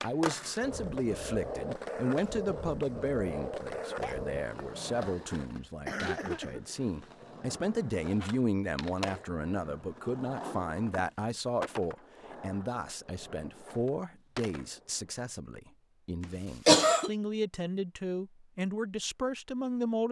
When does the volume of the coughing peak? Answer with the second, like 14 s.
17 s.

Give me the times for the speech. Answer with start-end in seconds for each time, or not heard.
0.0-20.0.